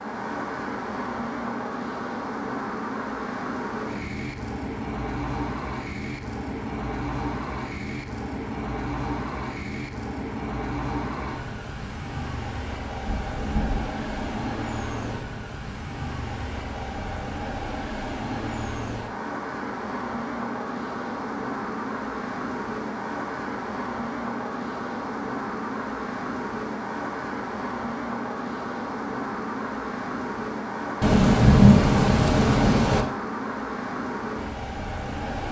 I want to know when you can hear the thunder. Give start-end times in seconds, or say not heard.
13.1-14.2, 31.0-33.0.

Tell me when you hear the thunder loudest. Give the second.
32 s.